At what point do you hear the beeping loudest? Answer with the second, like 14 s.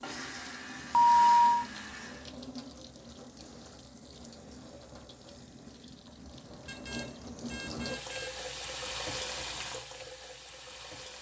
1 s.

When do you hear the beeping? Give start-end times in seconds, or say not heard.
0.9-1.6, 6.7-8.4.